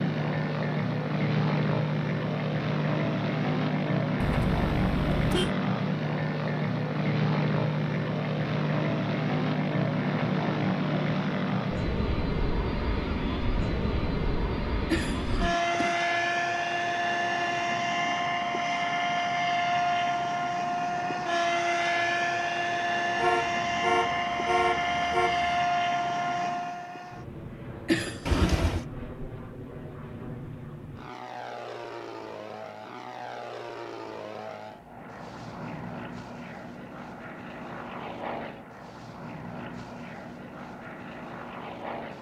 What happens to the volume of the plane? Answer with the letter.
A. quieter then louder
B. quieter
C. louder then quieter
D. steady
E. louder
B.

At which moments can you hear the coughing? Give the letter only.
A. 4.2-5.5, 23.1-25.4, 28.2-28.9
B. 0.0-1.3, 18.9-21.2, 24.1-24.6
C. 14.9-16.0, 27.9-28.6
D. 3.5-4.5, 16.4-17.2
C.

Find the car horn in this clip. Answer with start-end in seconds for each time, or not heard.
4.2-5.5, 23.1-25.4, 28.2-28.9.